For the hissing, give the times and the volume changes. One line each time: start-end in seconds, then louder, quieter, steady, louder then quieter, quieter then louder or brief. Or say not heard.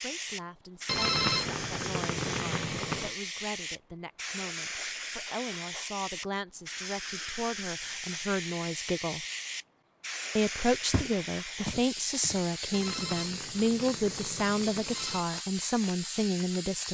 0.0-16.8 steady.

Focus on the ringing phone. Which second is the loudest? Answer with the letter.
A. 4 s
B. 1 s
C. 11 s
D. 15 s
B.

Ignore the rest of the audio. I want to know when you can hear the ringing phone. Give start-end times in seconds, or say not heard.
0.8-3.1, 12.7-15.2.